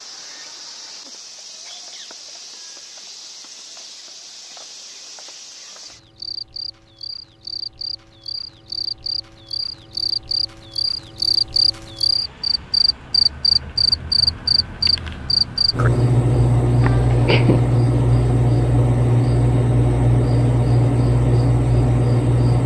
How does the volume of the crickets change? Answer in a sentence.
The volume of the crickets goes up.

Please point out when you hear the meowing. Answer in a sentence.
You can hear the meowing from 16.8 to 17.6 s.